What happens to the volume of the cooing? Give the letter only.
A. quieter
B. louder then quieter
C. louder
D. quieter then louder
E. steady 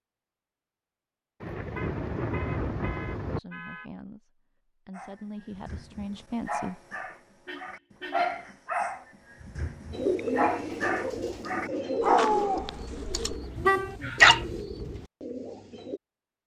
A.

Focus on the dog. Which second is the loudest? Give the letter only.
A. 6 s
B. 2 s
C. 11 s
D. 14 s
D.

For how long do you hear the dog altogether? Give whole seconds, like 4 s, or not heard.
10 s.